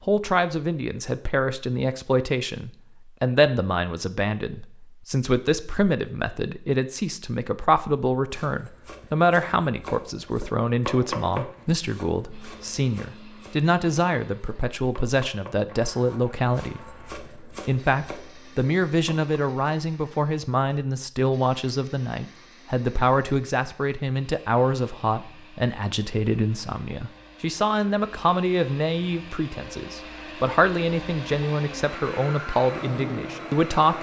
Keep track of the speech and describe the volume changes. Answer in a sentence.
The loudness of the speech stays about the same.